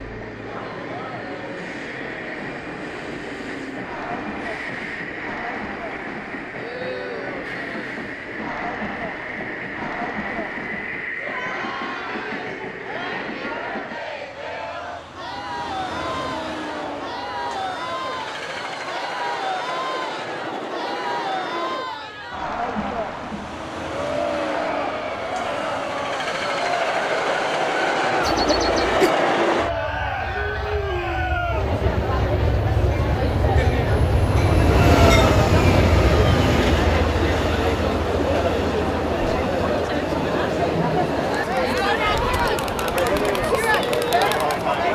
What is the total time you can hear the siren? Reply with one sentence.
The siren can't be heard in this clip.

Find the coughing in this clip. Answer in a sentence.
The coughing can be heard from 28.2 to 29.1 s.